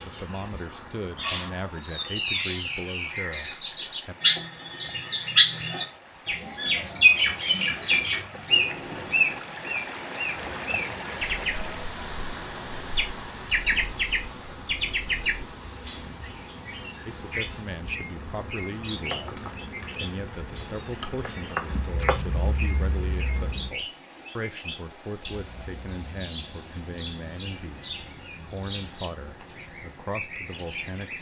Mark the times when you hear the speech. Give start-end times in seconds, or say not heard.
0.1-4.2, 17.1-31.1.